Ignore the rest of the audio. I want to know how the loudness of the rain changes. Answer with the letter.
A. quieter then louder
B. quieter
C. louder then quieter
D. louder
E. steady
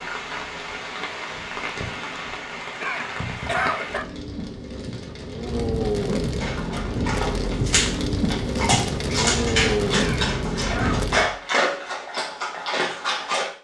D.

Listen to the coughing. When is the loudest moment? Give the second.
4 s.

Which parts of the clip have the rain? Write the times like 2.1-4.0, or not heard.
0.0-11.3.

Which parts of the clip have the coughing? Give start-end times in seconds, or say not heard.
2.8-4.0, 10.0-11.1.